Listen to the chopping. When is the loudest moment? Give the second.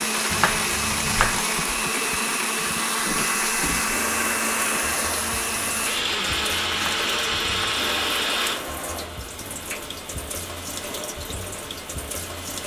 1 s.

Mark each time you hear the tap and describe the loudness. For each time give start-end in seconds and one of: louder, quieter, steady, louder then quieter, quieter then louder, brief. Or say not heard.
0.0-12.6 steady.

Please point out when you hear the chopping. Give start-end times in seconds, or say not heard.
0.3-1.4, 6.7-7.8.